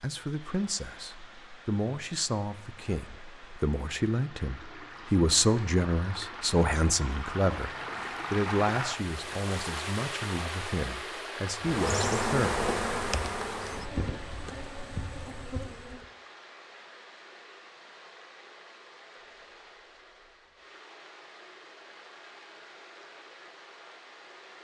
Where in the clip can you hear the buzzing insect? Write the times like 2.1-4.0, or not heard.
11.6-16.1.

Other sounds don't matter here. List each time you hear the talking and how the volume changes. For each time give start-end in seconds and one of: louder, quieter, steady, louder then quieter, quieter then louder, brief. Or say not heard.
0.0-12.6 louder then quieter.